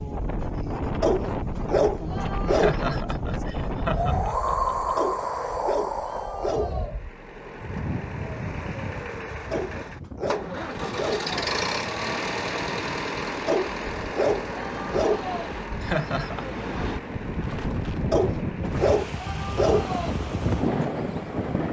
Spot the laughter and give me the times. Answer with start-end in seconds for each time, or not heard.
2.5-4.9, 15.8-16.4.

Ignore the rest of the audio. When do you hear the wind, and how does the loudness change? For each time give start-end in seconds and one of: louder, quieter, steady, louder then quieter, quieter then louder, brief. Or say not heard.
0.0-21.6 quieter then louder.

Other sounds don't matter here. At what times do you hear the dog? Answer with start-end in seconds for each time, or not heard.
1.0-2.8, 5.0-6.9, 9.5-11.3, 13.4-15.5, 18.1-20.1.